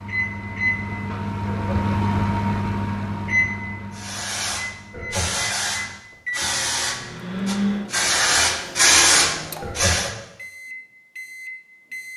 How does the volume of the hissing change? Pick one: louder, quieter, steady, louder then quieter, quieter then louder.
louder.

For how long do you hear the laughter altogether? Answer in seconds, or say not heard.
2 s.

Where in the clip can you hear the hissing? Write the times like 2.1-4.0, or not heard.
3.9-10.1.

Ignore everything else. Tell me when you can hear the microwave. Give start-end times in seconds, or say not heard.
0.0-12.1.